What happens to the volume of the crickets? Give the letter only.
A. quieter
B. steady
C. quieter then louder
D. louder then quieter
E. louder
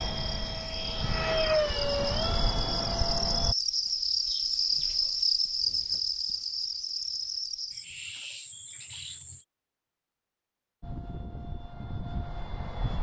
D.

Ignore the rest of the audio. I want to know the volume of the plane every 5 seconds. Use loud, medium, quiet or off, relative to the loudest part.
loud, off, medium.